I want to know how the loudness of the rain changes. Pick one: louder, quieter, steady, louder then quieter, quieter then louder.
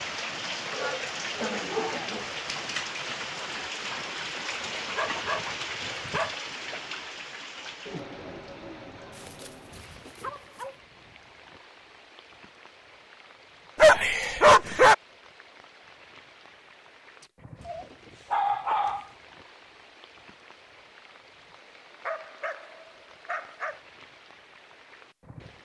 quieter.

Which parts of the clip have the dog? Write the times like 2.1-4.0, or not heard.
0.7-2.2, 4.8-6.3, 9.1-10.8, 13.8-14.9, 17.6-19.1, 22.1-23.8.